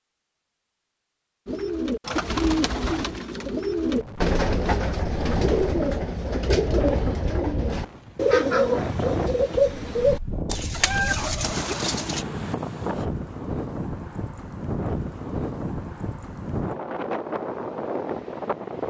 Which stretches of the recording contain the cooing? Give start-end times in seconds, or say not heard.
1.4-12.2.